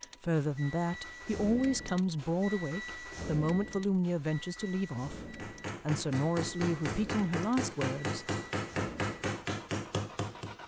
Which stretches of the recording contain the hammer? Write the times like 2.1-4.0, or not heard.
5.2-10.6.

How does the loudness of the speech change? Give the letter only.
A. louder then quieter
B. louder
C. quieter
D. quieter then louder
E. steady
E.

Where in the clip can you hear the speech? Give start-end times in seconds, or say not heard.
0.2-8.2.